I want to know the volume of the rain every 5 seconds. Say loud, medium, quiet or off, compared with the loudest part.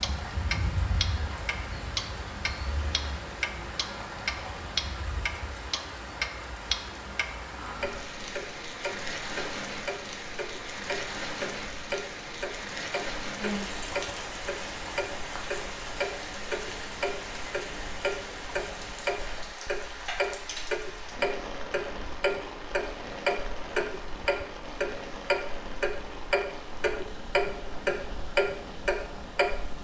loud, loud, loud, loud, loud, medium.